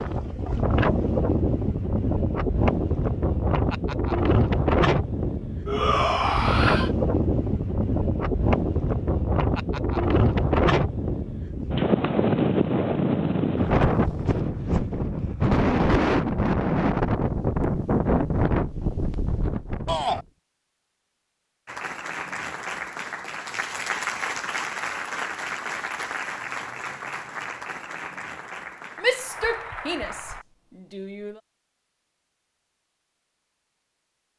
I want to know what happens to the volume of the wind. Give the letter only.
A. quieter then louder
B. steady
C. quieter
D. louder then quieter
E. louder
B.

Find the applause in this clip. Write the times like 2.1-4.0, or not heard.
21.6-30.4.